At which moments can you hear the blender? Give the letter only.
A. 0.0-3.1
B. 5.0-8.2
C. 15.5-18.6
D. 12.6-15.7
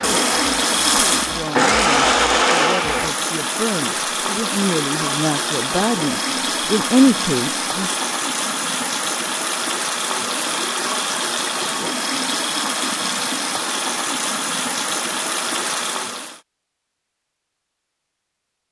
A.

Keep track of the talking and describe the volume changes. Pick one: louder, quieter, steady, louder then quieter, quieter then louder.
louder.